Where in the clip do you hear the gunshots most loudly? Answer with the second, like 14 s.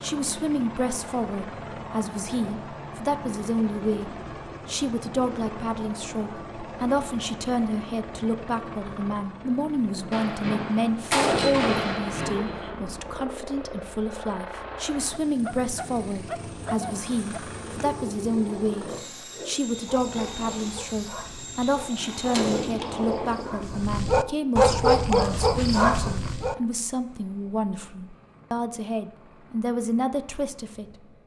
11 s.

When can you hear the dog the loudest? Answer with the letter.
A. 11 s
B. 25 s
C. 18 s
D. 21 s
B.